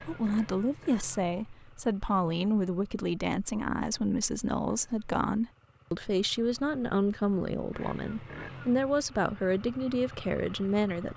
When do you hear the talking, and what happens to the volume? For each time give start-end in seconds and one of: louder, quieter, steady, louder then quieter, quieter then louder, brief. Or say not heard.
0.1-11.1 steady.